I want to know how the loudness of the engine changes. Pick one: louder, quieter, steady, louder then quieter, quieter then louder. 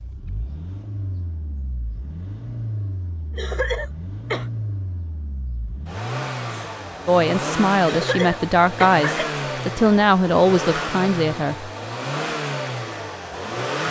louder.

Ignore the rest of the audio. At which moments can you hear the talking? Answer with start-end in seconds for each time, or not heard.
7.0-11.7.